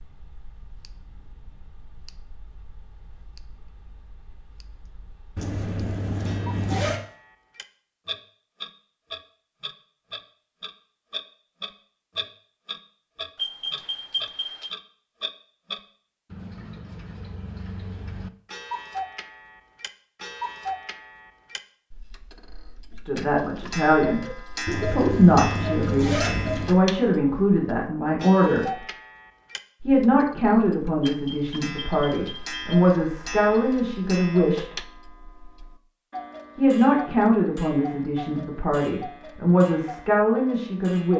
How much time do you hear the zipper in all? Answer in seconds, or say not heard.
4 s.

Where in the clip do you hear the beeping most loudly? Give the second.
14 s.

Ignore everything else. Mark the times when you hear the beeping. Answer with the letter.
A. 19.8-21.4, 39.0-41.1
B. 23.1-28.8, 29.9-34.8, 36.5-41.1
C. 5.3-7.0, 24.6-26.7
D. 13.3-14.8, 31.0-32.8
D.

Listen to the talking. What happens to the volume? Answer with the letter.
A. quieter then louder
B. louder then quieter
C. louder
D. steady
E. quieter
D.